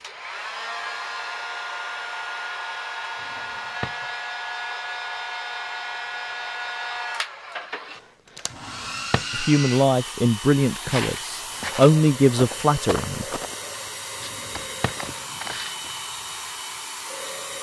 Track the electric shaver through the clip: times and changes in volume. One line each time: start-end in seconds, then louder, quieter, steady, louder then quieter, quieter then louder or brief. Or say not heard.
not heard.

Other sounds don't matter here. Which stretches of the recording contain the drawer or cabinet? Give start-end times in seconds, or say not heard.
3.2-4.0, 8.5-9.3, 14.2-15.1.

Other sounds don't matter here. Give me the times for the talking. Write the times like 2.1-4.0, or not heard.
9.3-13.2.